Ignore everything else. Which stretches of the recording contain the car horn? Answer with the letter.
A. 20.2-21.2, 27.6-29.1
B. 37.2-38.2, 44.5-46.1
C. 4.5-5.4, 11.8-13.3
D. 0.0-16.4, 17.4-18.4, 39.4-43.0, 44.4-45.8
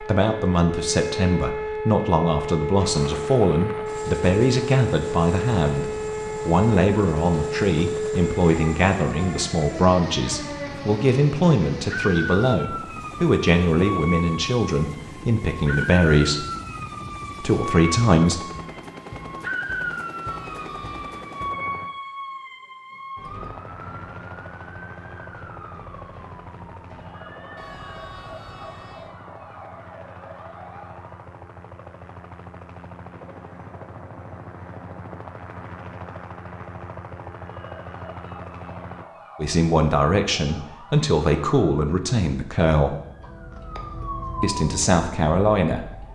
A.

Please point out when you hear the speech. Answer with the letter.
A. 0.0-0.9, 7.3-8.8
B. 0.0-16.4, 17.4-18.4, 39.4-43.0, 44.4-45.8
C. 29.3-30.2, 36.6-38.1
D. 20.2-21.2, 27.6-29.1
B.